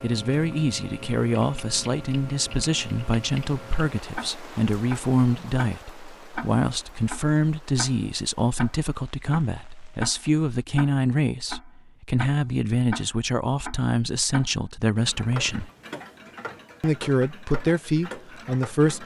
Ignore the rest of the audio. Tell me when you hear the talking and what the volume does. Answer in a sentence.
The talking can be heard from 0.0 to 15.7 s, at a steady volume; and briefly from 16.8 to 19.0 s.